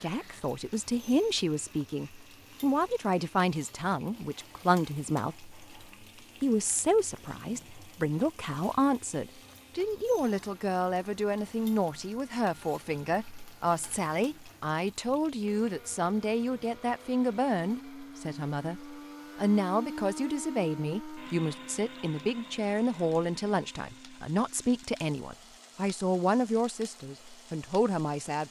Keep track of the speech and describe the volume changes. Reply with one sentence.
The loudness of the speech stays about the same.